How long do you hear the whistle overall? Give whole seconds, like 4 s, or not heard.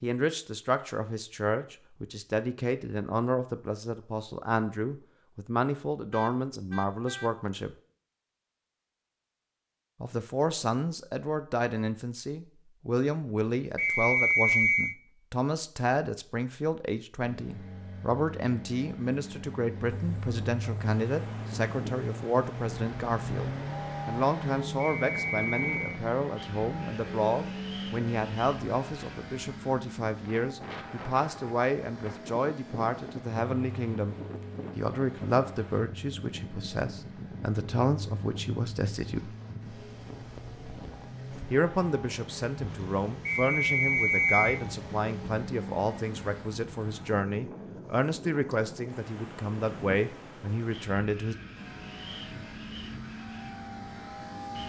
4 s.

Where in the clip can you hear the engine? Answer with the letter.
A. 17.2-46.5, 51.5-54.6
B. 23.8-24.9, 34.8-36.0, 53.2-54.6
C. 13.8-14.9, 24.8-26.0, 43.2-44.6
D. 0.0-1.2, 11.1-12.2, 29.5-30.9
A.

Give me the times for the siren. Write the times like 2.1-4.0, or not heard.
not heard.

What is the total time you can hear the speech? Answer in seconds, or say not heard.
46 s.